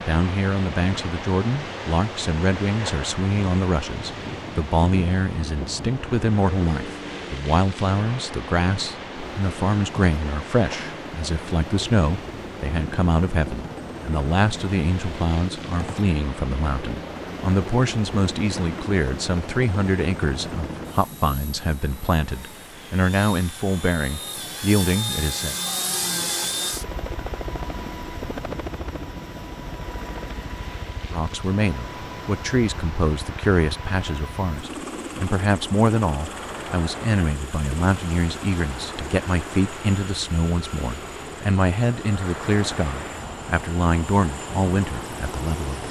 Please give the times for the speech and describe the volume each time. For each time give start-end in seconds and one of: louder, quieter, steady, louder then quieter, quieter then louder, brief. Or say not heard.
0.1-25.6 steady
31.1-45.8 steady.